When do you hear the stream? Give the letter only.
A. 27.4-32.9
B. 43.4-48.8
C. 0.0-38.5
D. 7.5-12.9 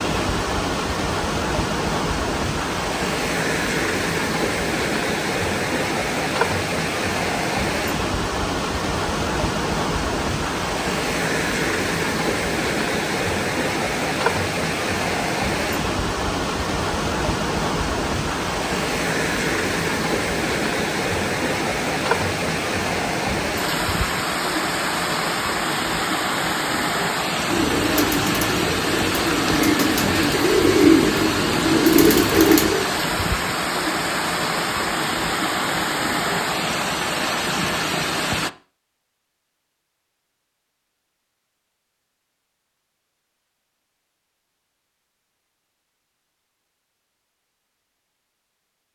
C.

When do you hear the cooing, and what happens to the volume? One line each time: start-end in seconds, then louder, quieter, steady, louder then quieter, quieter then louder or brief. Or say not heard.
27.4-32.9 louder.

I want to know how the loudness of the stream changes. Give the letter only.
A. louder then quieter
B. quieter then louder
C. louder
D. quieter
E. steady
E.